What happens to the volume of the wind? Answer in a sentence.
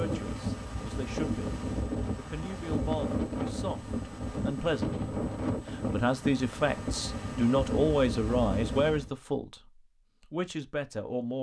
The volume of the wind stays about the same.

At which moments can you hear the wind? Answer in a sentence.
You can hear the wind from 0.0 to 9.1 s.